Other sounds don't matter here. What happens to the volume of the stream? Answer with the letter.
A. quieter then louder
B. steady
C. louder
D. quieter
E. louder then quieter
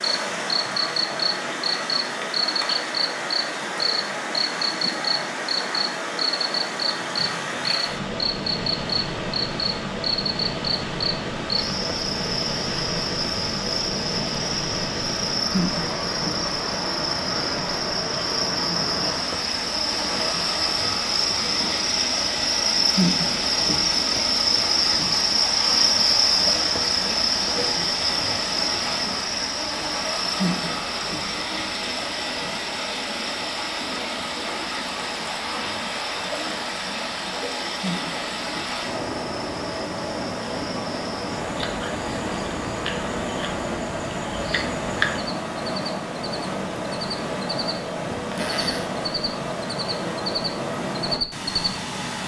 B.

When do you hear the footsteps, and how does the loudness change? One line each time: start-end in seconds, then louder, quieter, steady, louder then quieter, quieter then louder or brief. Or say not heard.
not heard.